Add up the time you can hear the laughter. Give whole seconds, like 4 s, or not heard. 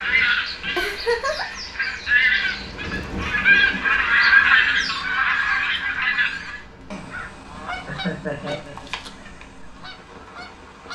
2 s.